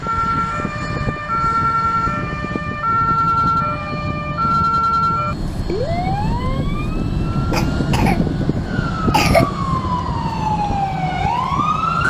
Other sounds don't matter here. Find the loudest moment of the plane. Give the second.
8 s.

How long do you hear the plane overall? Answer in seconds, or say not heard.
12 s.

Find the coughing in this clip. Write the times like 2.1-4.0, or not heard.
7.5-8.3, 9.1-9.5.